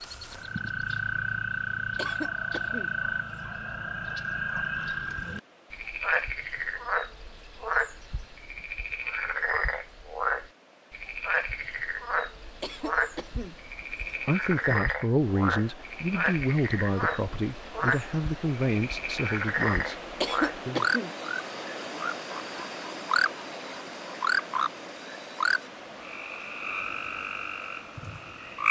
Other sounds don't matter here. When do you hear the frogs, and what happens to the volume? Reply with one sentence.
You can hear the frogs from 0.0 to 28.6 s, at a steady volume.